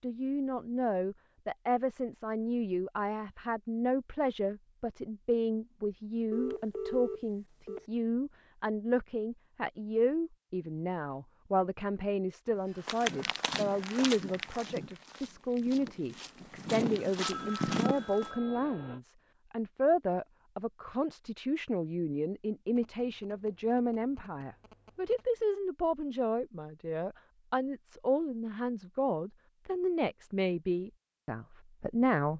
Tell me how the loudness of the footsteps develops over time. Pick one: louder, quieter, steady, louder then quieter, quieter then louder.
quieter then louder.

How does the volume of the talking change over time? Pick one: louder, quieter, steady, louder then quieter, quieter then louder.
steady.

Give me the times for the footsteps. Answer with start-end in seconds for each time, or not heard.
12.8-18.3.